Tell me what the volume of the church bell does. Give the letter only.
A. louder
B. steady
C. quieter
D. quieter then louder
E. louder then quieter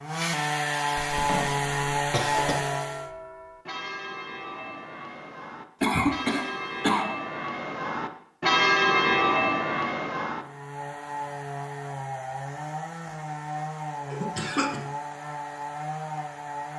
A.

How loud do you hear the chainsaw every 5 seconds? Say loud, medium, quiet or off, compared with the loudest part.
loud, off, medium, medium.